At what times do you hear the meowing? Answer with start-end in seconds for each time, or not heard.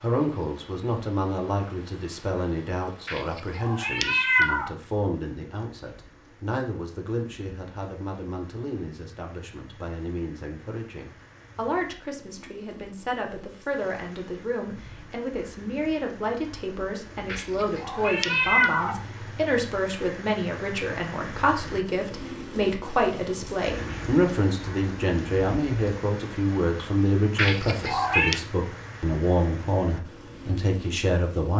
3.0-4.7, 17.2-19.0, 27.4-28.4.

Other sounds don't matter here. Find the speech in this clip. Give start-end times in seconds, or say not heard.
0.0-31.5.